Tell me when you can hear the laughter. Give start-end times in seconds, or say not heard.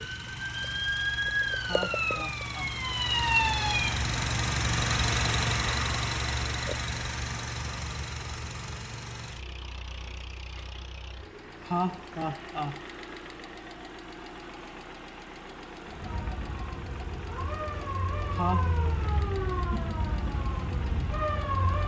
1.6-2.8, 11.6-12.8, 18.3-18.9.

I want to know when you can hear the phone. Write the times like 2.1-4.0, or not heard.
not heard.